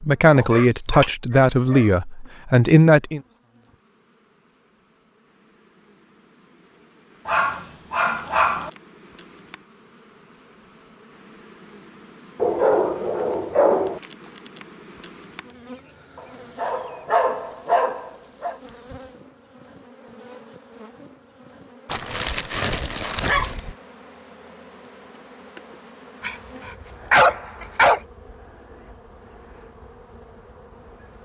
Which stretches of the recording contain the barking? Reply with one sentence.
The barking can be heard from 0.3 to 1.9 s, from 7.2 to 8.7 s, from 12.3 to 14.0 s, from 16.1 to 18.6 s, from 21.9 to 23.8 s and from 26.2 to 28.0 s.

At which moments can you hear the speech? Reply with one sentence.
The speech can be heard from 0.0 to 3.2 s.